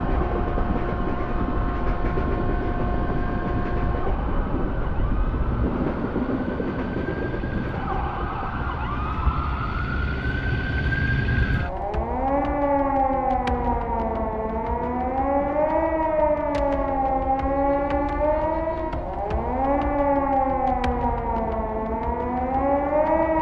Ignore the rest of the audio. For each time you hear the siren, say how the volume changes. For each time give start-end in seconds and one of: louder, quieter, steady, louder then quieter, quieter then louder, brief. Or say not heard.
0.0-23.3 louder.